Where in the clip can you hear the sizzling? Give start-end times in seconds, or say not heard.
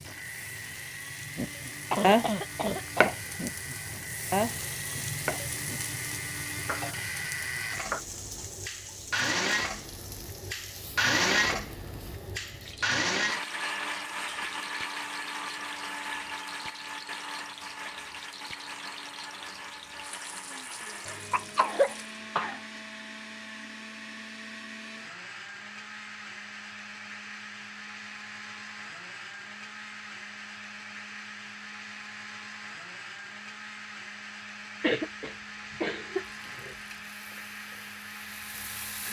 0.0-22.1, 36.2-39.0.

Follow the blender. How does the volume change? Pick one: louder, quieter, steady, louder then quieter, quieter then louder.
louder then quieter.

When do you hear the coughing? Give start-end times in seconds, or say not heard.
1.9-3.1, 21.1-22.6, 34.8-36.8.